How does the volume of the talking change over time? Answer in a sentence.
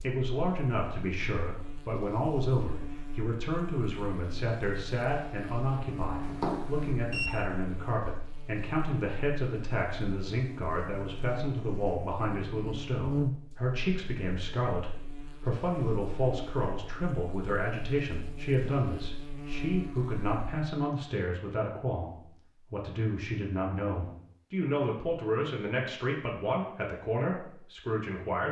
The loudness of the talking stays about the same.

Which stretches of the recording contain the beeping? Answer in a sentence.
The beeping can be heard from 6.2 to 7.3 s.